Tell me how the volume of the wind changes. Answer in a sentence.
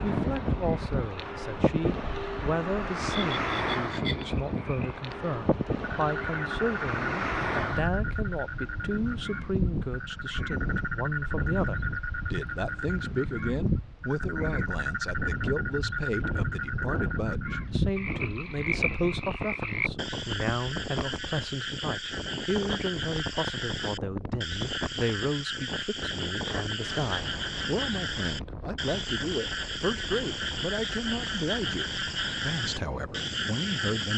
The loudness of the wind goes down.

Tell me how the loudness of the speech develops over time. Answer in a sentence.
The loudness of the speech stays about the same.